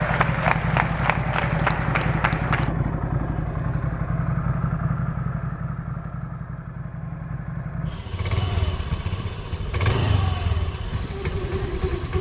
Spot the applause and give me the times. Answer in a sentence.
You can hear the applause from 0.0 to 2.7 s.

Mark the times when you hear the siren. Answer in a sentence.
The siren can't be heard in this clip.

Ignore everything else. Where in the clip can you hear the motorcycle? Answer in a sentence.
You can hear the motorcycle from 0.0 to 12.1 s.